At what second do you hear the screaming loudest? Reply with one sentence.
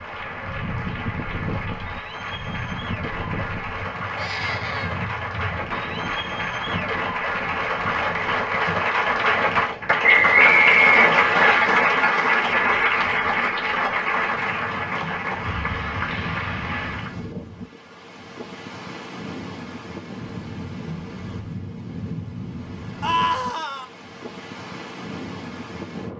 The loudest moment of the screaming is at 23 seconds.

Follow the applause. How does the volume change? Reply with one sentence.
The volume of the applause goes up, then down.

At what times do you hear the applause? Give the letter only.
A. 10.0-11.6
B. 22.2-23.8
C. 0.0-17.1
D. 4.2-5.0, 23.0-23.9
C.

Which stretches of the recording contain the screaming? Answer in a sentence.
The screaming can be heard from 4.2 to 5.0 s and from 23.0 to 23.9 s.